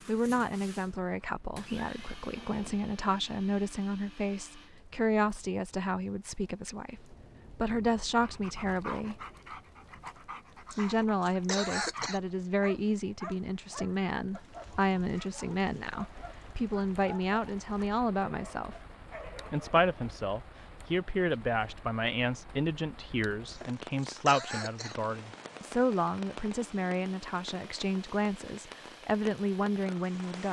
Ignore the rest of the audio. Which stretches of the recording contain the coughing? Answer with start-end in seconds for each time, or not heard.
10.7-12.2, 23.4-24.9.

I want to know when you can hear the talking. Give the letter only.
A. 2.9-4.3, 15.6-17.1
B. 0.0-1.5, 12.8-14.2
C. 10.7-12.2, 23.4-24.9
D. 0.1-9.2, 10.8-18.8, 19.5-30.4
D.